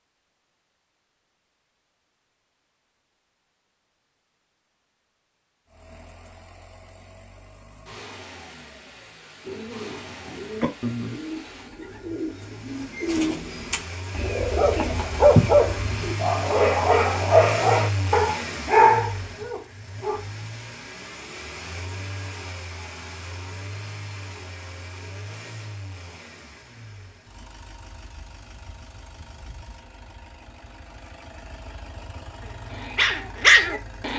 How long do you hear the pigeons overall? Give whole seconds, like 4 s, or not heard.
7 s.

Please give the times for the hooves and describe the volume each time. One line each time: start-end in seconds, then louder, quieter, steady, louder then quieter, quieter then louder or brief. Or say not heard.
not heard.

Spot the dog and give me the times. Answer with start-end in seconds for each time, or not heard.
14.6-20.2, 32.4-34.1.